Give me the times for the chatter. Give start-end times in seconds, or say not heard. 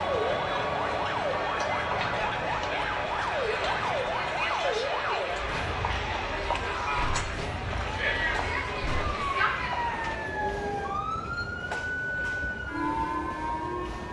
0.0-10.3.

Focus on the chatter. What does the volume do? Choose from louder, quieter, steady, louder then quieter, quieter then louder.
steady.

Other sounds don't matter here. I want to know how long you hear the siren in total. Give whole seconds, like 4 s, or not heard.
14 s.